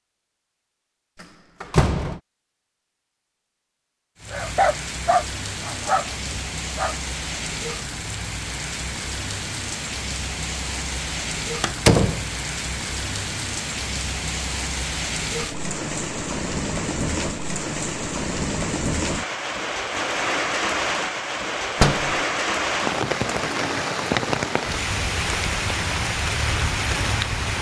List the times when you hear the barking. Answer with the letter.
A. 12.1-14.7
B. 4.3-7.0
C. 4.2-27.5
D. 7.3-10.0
B.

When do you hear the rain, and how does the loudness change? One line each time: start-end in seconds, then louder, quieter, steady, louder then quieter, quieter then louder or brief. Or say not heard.
4.2-27.5 louder.